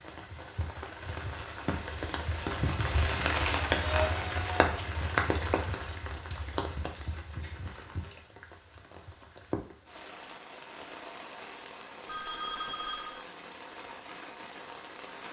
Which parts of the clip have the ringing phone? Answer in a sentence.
You can hear the ringing phone from 12.1 to 13.2 s.